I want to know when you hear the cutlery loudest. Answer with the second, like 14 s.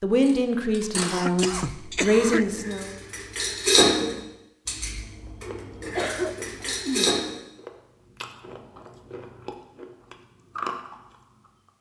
4 s.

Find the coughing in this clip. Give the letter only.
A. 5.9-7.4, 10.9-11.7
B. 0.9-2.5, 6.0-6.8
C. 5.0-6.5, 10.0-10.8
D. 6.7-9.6
B.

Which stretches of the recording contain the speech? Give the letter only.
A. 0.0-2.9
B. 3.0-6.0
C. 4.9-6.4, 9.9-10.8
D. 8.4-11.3
A.